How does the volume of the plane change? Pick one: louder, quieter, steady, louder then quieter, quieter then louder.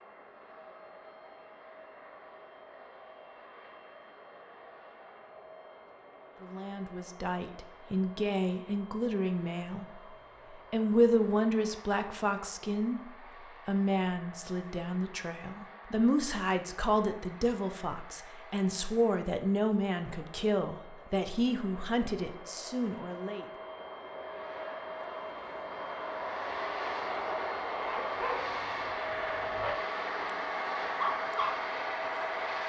louder.